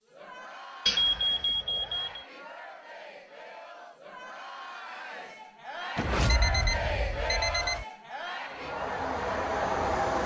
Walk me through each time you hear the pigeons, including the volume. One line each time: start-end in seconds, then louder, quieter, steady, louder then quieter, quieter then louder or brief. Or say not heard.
not heard.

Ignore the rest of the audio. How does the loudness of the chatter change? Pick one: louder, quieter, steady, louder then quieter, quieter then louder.
louder.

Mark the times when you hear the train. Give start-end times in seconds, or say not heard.
8.4-10.2.